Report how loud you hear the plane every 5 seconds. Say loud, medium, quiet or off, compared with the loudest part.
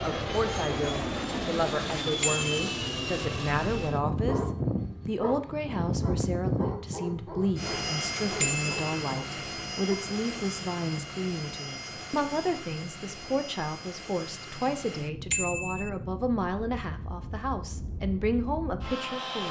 loud, loud, medium, medium.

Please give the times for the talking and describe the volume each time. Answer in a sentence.
You can hear the talking from 0.0 to 19.4 s, at a steady volume.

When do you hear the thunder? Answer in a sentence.
You can't hear the thunder here.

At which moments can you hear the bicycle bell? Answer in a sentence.
You can hear the bicycle bell from 2.2 to 2.8 s, from 8.4 to 8.8 s and from 15.3 to 15.9 s.